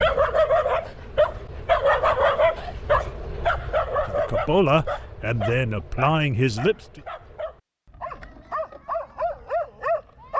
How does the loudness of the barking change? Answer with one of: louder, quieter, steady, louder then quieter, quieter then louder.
quieter then louder.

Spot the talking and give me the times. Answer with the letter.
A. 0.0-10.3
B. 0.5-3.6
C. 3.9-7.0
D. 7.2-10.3
C.